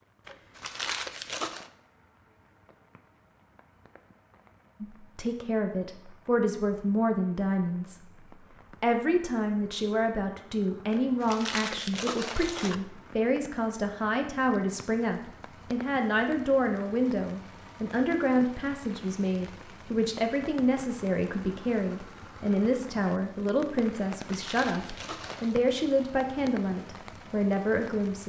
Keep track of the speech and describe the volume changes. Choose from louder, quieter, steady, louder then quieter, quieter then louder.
steady.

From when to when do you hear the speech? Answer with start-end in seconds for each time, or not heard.
4.8-8.0, 8.8-28.2.